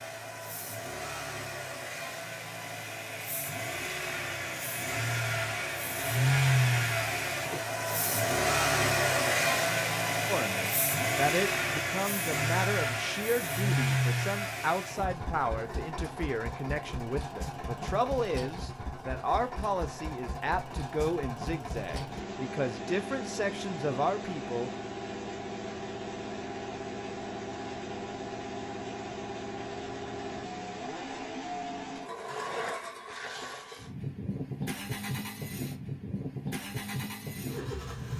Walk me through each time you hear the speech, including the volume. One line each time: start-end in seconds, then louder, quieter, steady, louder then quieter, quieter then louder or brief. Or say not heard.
10.2-24.7 steady.